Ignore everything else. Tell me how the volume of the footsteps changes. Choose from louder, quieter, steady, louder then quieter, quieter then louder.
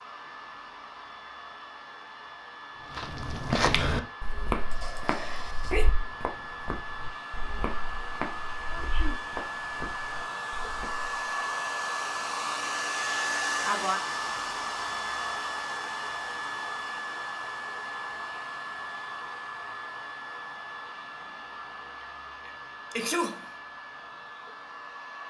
quieter.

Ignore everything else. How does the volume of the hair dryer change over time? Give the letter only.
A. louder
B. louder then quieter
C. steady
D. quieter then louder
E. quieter
B.